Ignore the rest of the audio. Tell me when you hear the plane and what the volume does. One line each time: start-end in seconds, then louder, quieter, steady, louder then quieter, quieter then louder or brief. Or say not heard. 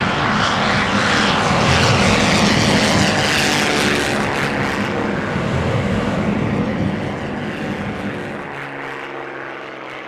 0.0-10.0 quieter.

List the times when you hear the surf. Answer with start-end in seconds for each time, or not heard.
0.0-8.6.